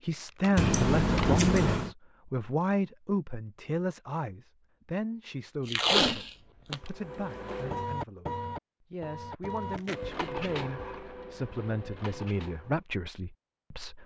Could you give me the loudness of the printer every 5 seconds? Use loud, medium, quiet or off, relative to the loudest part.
off, loud, loud.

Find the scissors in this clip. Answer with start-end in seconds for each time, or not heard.
0.6-1.9.